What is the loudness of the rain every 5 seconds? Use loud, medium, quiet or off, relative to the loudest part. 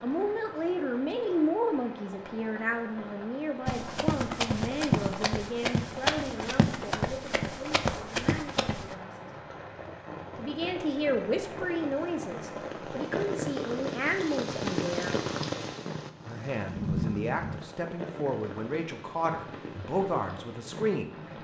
medium, medium, loud, loud, medium.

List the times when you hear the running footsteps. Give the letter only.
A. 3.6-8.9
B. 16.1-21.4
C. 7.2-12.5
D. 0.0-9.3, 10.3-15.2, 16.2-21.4
A.